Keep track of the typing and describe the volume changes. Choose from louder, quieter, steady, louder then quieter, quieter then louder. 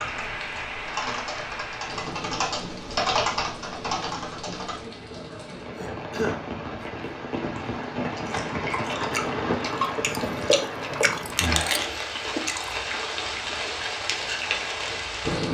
louder then quieter.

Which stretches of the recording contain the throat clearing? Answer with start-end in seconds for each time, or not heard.
5.7-7.1.